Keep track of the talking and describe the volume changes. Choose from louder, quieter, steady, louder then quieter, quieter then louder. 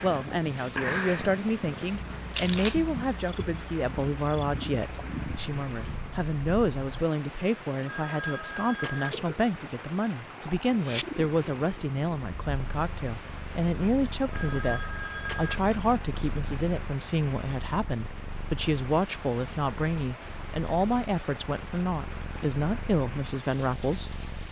steady.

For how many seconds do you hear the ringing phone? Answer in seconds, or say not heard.
3 s.